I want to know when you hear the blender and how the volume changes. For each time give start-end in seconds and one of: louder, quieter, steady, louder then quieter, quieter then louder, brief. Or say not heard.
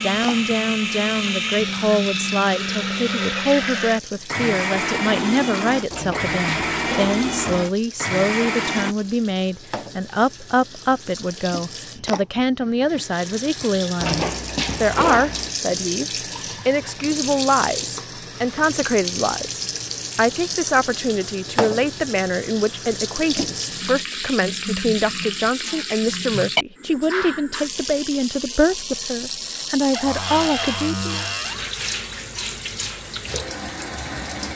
0.0-8.9 steady.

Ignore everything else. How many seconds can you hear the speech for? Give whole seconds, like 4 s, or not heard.
31 s.